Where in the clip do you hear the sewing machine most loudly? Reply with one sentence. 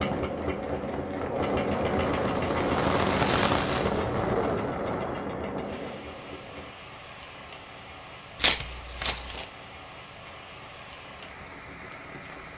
The volume of the sewing machine peaks at 2 seconds.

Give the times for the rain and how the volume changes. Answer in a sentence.
The rain can be heard from 0.0 to 12.5 s, getting louder then quieter.